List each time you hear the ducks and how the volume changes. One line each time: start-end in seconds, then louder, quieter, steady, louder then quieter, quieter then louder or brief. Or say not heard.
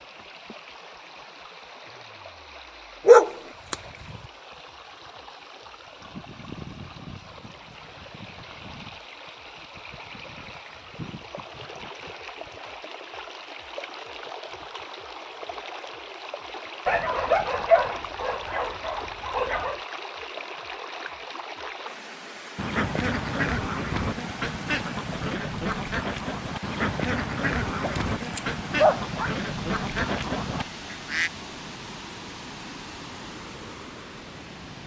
22.6-31.3 steady.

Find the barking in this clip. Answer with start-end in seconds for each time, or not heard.
3.0-3.8, 16.9-19.8, 27.8-29.3.